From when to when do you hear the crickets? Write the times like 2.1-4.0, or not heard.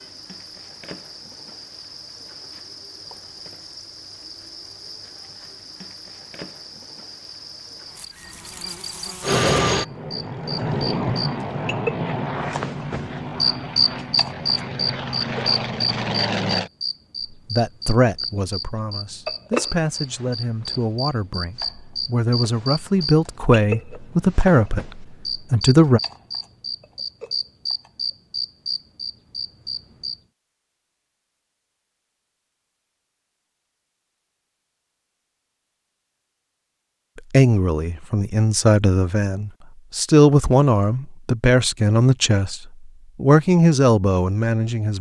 0.0-30.2.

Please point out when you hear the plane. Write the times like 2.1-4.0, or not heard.
9.2-16.7.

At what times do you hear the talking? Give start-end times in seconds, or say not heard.
17.5-26.0, 37.3-44.9.